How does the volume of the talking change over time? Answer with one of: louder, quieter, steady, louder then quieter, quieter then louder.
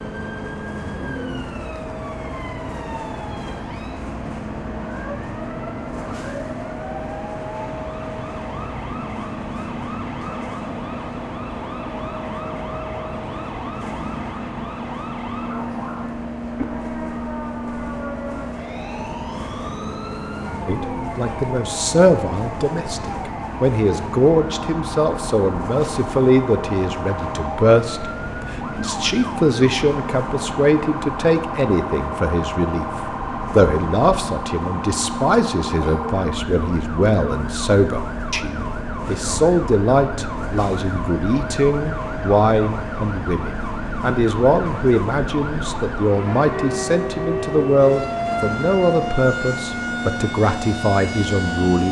steady.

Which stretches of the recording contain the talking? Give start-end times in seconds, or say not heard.
20.6-51.8.